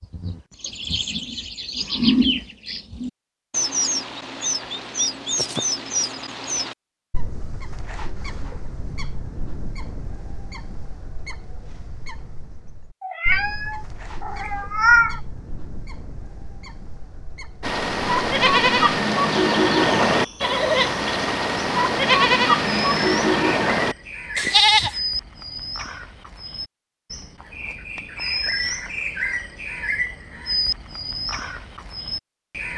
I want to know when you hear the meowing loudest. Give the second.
15 s.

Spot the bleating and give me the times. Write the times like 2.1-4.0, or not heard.
17.6-24.9.